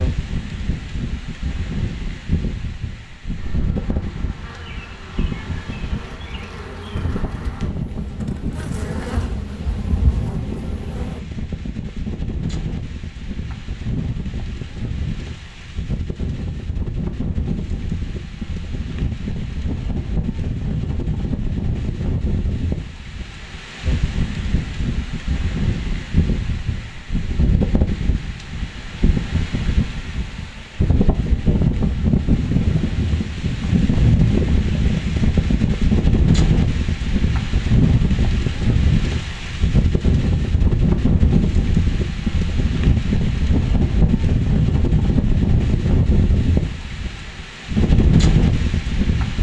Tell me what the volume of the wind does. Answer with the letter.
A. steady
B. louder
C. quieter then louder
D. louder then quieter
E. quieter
B.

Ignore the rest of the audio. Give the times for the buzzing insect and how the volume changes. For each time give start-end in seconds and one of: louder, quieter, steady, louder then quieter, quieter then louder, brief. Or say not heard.
3.4-11.2 louder.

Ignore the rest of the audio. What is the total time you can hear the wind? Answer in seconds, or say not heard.
49 s.